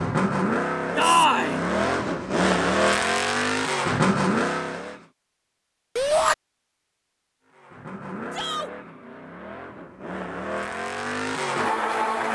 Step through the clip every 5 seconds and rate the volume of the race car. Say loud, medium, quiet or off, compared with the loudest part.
loud, quiet, loud.